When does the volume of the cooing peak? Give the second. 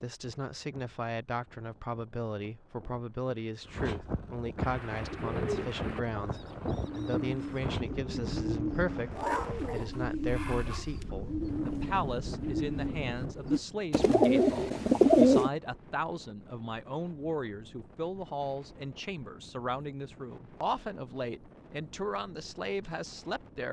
15 s.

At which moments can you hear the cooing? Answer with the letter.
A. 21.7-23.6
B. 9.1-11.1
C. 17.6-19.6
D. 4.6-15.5
D.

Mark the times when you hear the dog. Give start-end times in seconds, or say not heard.
9.1-11.1.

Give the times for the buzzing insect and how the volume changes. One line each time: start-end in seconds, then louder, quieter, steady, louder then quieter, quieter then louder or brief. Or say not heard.
not heard.